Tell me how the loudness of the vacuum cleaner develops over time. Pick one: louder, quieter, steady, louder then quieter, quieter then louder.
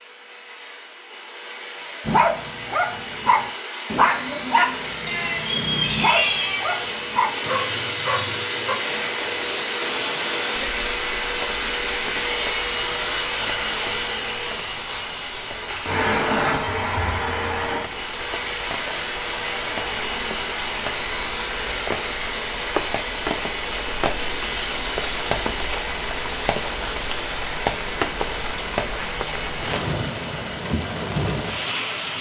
louder then quieter.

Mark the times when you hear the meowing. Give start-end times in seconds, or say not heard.
5.0-6.8.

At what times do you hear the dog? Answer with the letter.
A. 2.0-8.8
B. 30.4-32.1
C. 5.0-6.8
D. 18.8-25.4
A.